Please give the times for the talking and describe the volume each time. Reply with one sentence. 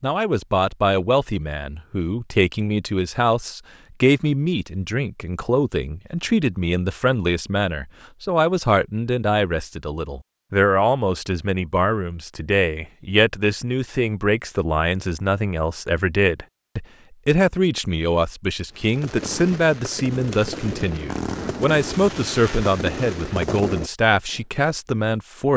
You can hear the talking from 0.0 to 25.5 s, at a steady volume.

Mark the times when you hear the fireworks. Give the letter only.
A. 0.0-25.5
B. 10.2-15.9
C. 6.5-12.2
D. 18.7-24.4
D.